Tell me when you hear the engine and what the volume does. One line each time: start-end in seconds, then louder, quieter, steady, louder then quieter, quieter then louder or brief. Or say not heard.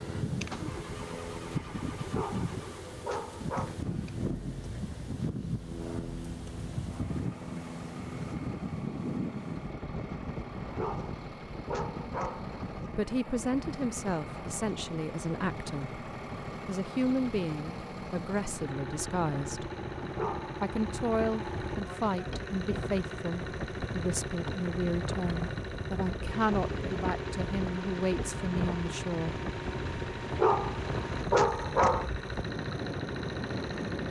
0.2-34.0 louder.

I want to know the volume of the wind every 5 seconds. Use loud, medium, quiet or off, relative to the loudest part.
loud, loud, medium, medium, medium, loud, loud.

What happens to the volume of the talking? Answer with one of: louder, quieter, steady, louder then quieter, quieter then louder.
steady.